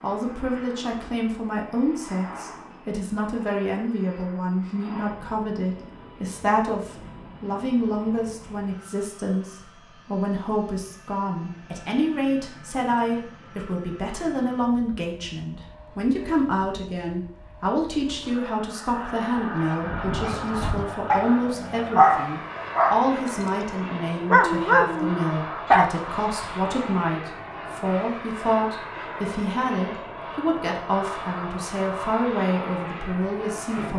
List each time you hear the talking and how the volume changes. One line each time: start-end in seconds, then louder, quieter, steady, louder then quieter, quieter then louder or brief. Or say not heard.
0.0-33.9 steady.